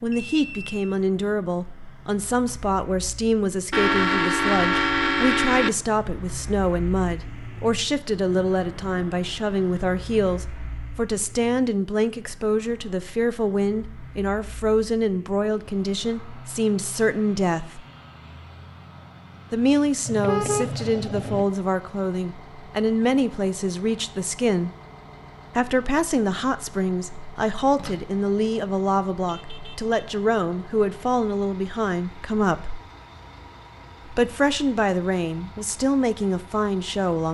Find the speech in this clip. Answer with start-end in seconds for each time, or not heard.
0.0-17.8, 19.5-24.7, 25.6-32.8, 34.1-37.3.